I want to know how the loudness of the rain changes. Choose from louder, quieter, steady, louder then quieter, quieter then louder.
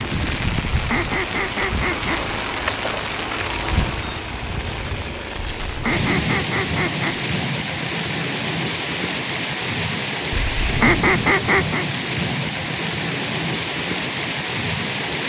steady.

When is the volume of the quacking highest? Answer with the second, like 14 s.
11 s.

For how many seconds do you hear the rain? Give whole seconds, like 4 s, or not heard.
15 s.